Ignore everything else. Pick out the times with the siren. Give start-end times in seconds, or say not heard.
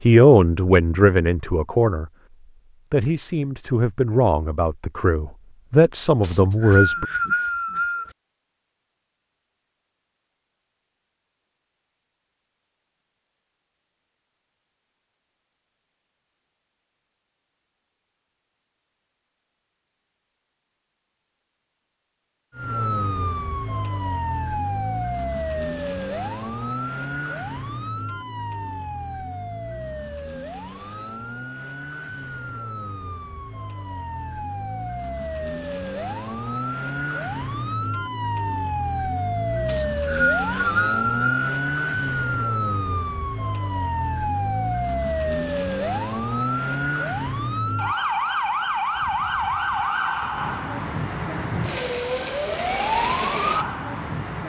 22.5-54.4.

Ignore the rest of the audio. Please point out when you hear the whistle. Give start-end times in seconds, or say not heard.
6.2-8.1, 39.6-41.5.